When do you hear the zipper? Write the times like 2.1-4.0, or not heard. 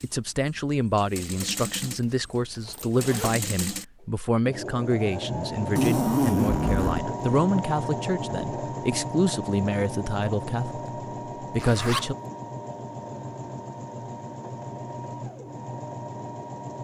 2.6-3.4, 5.8-7.1, 11.6-12.1.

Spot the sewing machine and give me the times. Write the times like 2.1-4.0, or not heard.
0.0-16.7.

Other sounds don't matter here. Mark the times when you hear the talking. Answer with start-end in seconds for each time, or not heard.
0.0-12.2.